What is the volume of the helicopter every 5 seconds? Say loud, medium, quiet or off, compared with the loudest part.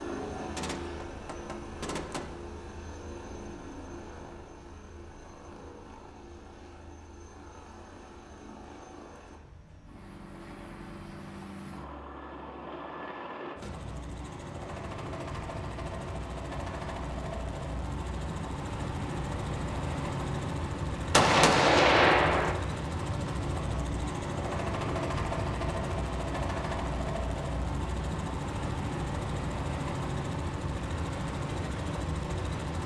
medium, quiet, medium, loud, loud, loud, loud.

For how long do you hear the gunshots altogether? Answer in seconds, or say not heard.
3 s.